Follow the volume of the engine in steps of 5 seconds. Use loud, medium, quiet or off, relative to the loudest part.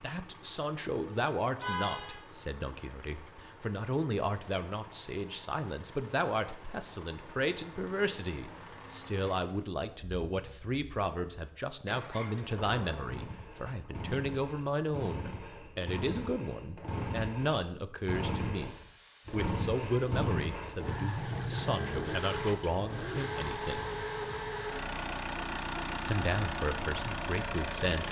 quiet, quiet, medium, loud, loud, loud.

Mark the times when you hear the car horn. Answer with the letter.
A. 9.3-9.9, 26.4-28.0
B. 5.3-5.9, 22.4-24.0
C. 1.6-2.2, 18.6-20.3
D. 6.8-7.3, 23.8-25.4
C.